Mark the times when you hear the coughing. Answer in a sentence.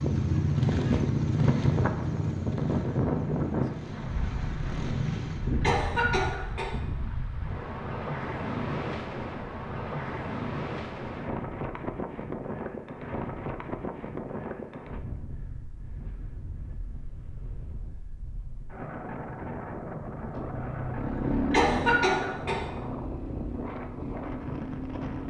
The coughing can be heard from 5.6 to 6.8 s and from 21.5 to 22.6 s.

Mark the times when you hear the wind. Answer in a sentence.
You can hear the wind from 0.0 to 25.2 s.